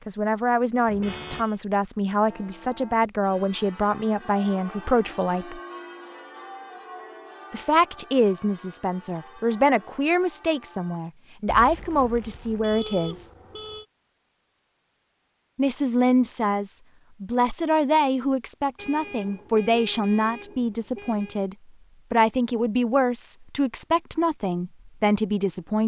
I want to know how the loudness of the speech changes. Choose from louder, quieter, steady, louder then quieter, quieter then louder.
steady.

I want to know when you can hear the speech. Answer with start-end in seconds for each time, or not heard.
0.1-5.6, 7.5-13.2, 15.6-25.8.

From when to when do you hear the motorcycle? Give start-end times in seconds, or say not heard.
not heard.